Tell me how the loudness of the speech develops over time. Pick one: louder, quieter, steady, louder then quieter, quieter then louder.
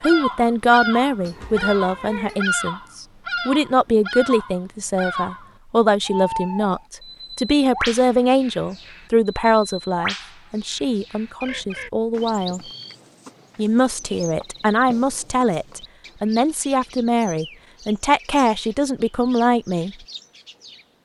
steady.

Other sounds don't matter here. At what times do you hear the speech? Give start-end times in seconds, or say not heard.
0.0-12.6, 13.6-19.9.